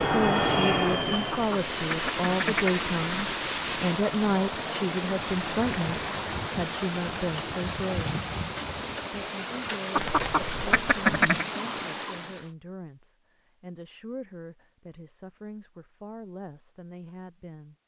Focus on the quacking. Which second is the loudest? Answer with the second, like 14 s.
11 s.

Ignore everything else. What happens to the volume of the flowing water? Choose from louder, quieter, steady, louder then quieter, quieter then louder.
steady.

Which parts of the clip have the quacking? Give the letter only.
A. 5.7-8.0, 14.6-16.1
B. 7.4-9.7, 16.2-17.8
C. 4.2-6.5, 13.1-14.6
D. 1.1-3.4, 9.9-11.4
D.